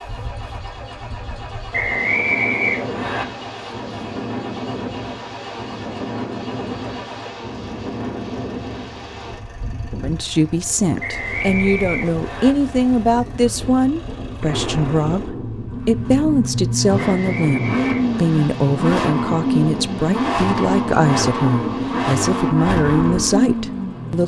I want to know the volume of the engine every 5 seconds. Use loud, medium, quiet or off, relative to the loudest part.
quiet, quiet, quiet, loud, loud.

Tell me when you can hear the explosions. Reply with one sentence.
You can hear the explosions from 14.4 to 15.8 s.